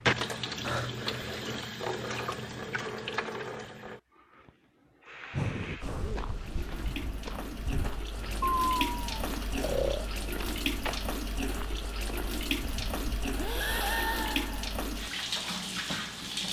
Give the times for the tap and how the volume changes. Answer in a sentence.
The tap can be heard from 0.0 to 16.4 s, getting quieter then louder.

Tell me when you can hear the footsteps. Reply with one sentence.
You can hear the footsteps from 5.8 to 13.8 s.